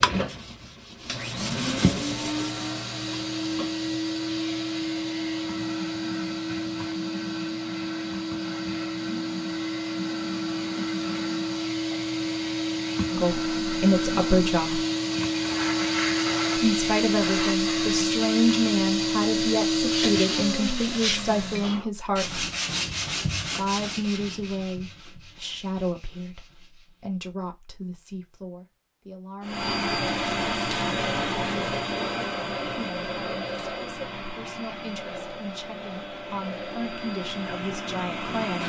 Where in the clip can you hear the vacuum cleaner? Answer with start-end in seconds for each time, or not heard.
0.0-21.8, 29.4-38.6.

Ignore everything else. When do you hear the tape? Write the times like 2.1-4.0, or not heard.
not heard.